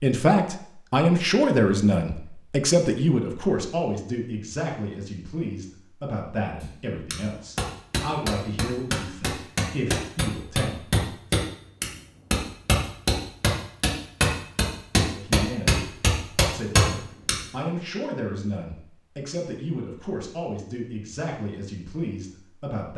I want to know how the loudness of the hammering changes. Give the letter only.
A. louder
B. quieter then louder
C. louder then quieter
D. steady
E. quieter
A.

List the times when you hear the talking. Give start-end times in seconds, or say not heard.
0.0-11.1, 15.1-22.9.